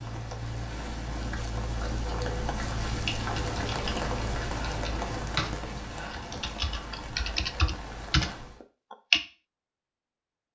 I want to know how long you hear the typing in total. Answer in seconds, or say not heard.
6 s.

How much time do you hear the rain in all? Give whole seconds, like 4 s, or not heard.
9 s.